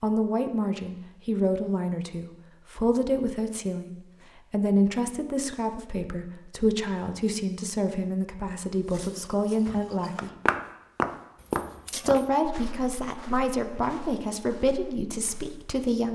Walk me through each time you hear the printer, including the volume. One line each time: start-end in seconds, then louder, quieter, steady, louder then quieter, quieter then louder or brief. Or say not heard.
not heard.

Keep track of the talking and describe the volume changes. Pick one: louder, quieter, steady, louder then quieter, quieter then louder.
steady.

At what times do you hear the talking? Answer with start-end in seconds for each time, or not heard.
0.0-10.3, 11.9-16.1.